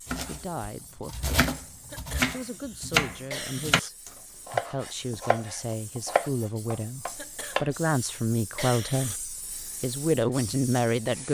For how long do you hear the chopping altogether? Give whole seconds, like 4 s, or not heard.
8 s.